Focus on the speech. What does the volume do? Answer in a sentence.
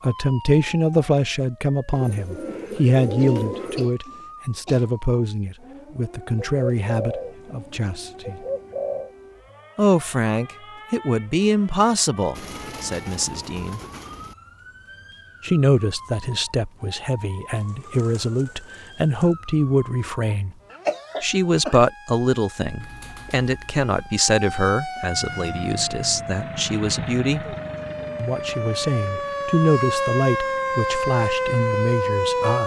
The volume of the speech stays about the same.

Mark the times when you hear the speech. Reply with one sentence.
The speech can be heard from 0.0 to 8.4 s, from 9.8 to 13.8 s, from 15.4 to 20.6 s, from 21.2 to 27.6 s and from 28.1 to 32.6 s.